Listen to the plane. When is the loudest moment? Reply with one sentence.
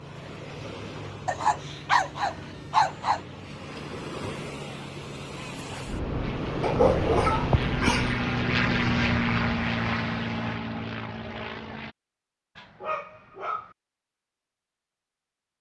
The loudest moment of the plane is at 9 seconds.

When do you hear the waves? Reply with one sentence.
You can hear the waves from 0.0 to 10.6 s.